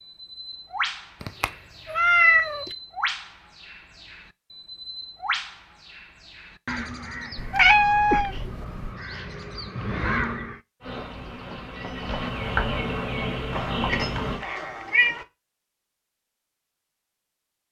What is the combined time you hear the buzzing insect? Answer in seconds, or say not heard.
4 s.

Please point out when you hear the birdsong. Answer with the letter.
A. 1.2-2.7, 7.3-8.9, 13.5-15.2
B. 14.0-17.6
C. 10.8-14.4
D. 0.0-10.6
D.